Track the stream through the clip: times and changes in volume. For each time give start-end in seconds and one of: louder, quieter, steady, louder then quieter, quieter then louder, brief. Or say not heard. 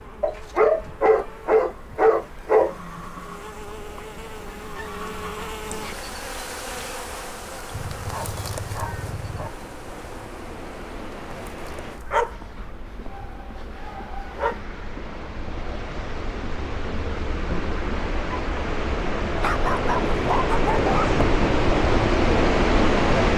0.0-23.3 louder.